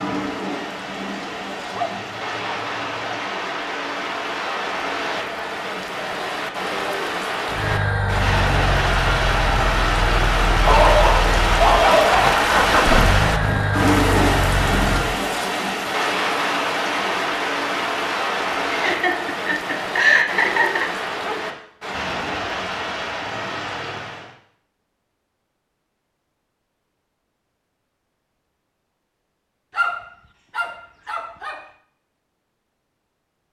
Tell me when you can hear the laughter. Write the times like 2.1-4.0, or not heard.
18.7-21.0.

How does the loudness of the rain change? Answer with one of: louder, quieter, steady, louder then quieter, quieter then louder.
louder then quieter.